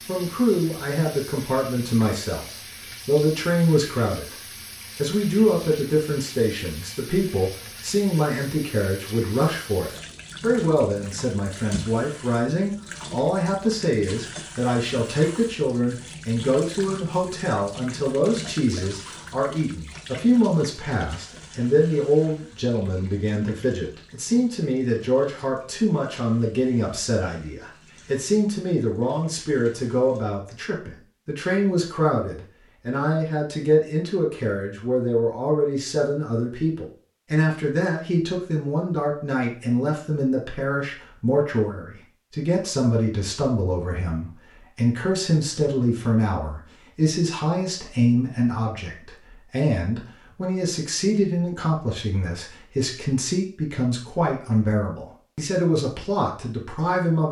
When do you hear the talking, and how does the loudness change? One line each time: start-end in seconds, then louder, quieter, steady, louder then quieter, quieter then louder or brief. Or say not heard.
0.1-2.5 brief
3.0-4.3 brief
5.0-57.2 steady.